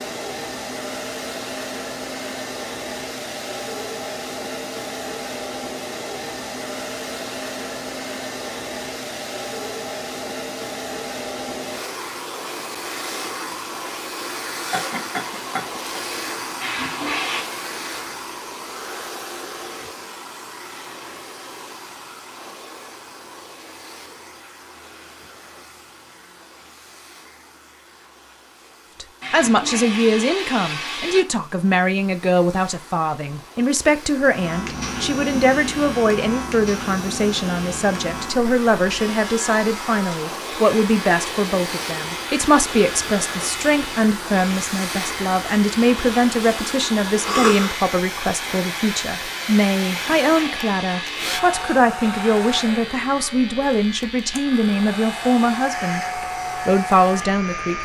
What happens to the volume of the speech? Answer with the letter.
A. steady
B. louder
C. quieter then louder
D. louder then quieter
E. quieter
A.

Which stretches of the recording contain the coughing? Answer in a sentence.
The coughing can be heard from 14.6 to 16.0 s and from 47.2 to 47.8 s.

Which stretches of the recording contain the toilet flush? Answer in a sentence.
You can hear the toilet flush from 16.6 to 17.4 s, from 29.2 to 31.2 s and from 49.9 to 51.4 s.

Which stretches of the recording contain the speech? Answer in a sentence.
You can hear the speech from 29.0 to 57.8 s.